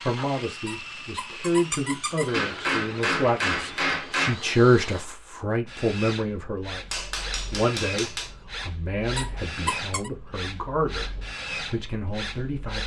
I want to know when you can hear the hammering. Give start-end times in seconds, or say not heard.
2.3-4.3, 6.9-8.3.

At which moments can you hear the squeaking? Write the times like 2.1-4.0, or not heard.
0.7-2.5, 9.1-10.1.